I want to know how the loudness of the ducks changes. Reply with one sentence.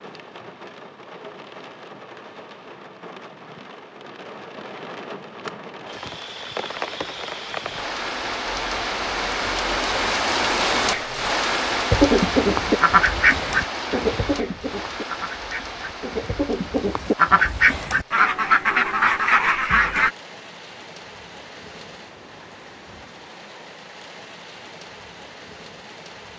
The volume of the ducks goes down, then up.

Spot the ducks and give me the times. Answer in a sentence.
You can hear the ducks from 11.9 to 20.1 s.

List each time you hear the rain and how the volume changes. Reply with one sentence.
The rain can be heard from 0.0 to 26.3 s, getting louder then quieter.